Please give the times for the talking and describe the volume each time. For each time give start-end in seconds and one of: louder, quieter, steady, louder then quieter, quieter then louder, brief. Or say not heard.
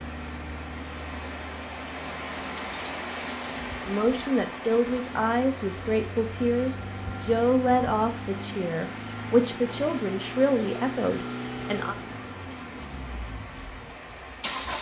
3.9-11.9 steady.